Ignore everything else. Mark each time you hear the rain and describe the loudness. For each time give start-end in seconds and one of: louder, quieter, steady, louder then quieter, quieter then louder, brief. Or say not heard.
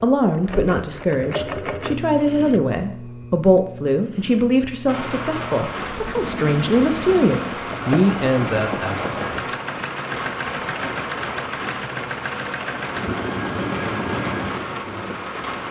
4.8-15.6 steady.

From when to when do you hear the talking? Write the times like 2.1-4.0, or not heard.
0.0-9.6.